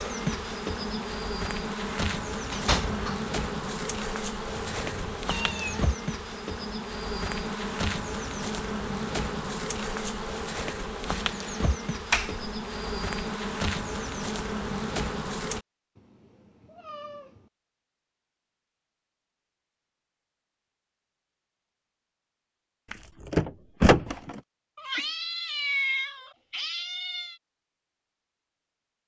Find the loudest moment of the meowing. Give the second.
26 s.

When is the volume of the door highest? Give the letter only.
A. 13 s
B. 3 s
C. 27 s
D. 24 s
D.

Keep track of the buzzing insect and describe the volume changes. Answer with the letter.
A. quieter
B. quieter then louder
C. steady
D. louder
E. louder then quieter
C.